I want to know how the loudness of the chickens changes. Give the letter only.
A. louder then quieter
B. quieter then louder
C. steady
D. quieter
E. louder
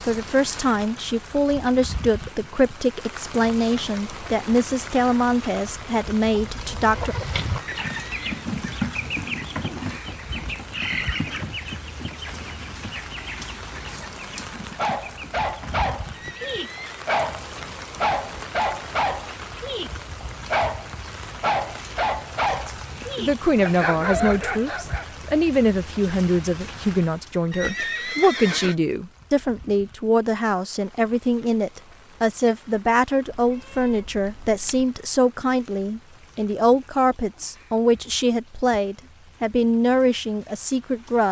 D.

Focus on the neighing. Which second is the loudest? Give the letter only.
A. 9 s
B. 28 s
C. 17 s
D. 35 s
B.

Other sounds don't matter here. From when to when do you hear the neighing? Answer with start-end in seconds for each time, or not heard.
7.5-8.5, 16.1-17.1, 27.5-28.8.